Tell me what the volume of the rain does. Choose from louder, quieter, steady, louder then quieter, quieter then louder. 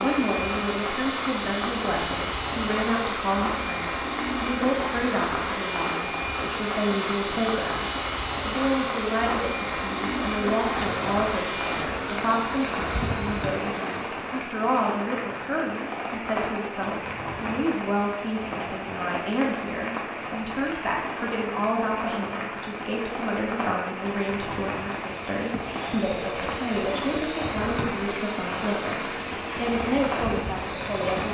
steady.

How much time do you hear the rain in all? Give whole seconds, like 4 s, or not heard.
31 s.